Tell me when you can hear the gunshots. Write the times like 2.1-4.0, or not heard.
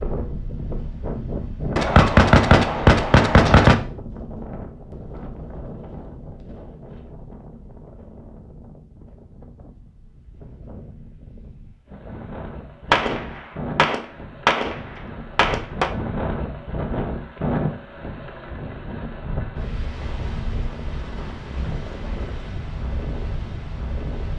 1.8-3.8, 12.9-14.8, 15.3-15.9.